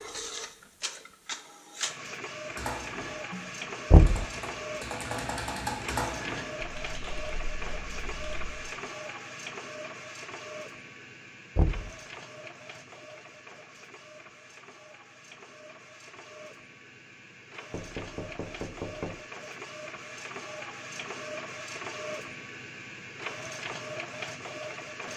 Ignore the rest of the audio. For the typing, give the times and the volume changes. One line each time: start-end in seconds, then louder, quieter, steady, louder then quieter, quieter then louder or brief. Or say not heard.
2.5-8.6 louder then quieter.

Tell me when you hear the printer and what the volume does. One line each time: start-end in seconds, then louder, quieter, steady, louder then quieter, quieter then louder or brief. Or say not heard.
0.0-25.1 quieter then louder.